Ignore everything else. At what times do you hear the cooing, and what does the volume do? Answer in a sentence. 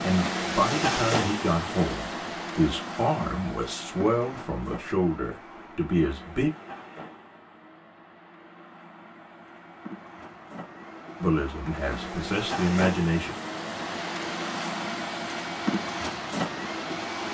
You can't hear the cooing here.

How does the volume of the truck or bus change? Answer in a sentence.
The loudness of the truck or bus goes down, then up.